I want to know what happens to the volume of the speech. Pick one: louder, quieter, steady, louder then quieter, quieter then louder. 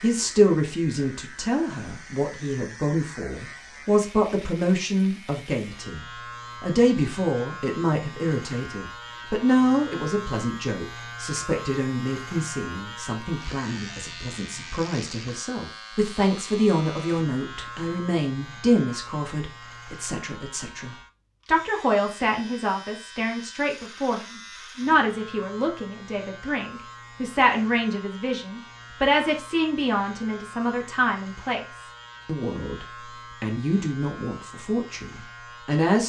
steady.